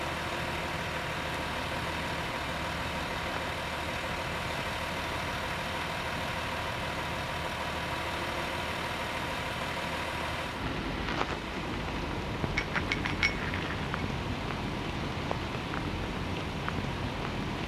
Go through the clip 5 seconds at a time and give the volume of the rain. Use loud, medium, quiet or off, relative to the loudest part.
medium, medium, loud, loud.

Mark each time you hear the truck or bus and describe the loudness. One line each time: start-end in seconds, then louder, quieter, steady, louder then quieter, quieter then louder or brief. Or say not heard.
0.0-17.6 quieter.